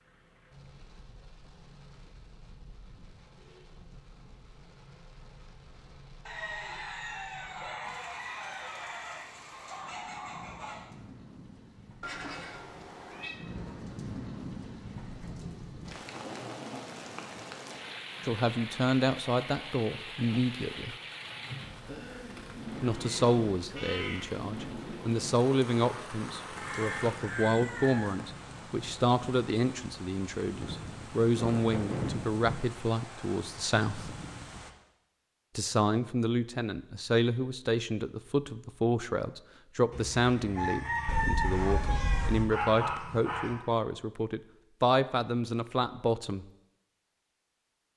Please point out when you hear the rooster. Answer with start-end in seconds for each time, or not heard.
6.2-10.9, 26.6-28.1, 39.9-43.5.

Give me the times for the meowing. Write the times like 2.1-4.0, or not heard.
12.0-13.4, 22.8-24.3, 41.0-42.5.